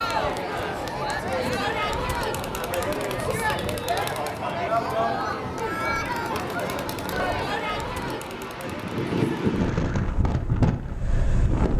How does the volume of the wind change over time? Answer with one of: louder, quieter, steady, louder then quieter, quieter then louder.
louder.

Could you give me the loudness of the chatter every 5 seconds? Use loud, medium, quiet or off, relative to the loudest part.
loud, loud, off.